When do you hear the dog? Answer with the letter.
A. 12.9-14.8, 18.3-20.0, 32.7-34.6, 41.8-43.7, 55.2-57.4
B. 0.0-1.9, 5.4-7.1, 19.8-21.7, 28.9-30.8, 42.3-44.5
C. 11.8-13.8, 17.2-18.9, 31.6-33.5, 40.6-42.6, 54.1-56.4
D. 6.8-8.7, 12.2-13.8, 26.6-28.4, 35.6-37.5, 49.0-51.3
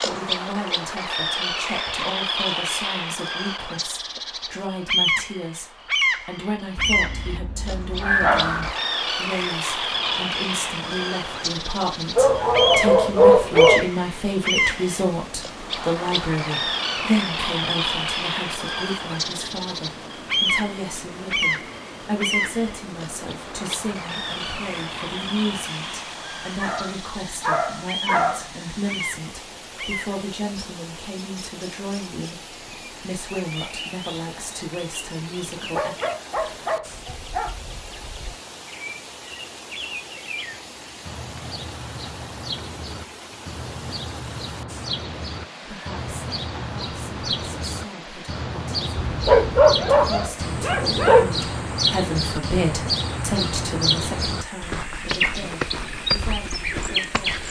D.